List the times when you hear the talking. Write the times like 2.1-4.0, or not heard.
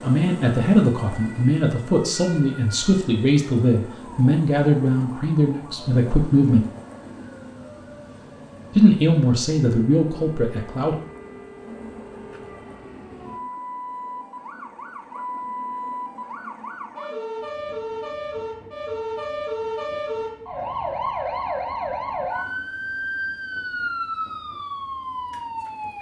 0.0-6.7, 8.7-10.9.